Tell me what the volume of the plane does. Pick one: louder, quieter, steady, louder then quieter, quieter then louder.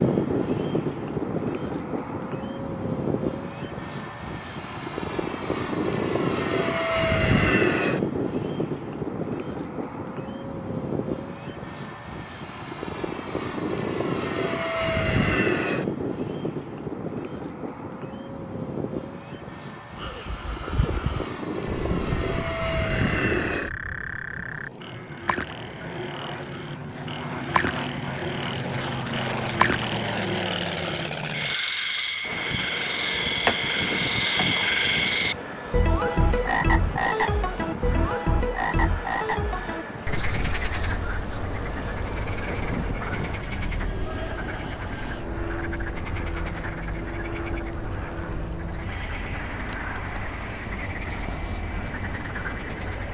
quieter.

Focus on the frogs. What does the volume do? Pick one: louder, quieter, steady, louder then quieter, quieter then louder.
louder then quieter.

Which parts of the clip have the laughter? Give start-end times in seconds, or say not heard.
not heard.